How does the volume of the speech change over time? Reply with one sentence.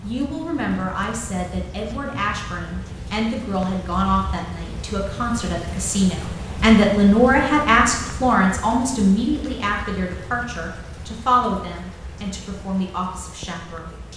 The volume of the speech goes up, then down.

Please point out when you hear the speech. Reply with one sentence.
The speech can be heard from 0.0 to 14.1 s.